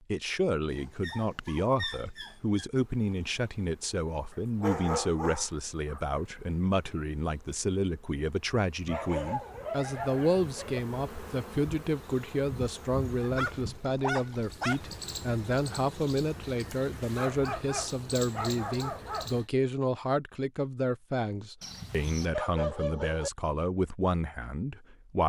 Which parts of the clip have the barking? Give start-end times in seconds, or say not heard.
0.7-2.7, 4.3-6.0, 8.8-10.8, 13.2-14.8, 17.1-19.3, 21.6-23.3.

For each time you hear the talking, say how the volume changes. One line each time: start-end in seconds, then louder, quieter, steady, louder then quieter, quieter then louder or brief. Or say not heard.
0.1-25.2 steady.